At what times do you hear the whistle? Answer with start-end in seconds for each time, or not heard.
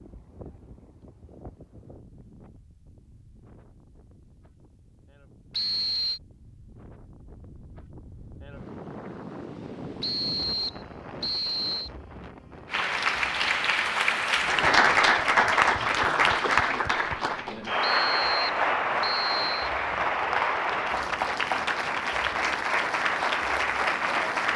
5.5-6.2, 10.0-11.9, 17.8-19.6.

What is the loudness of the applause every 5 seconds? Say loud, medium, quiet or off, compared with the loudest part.
off, off, loud, loud, loud.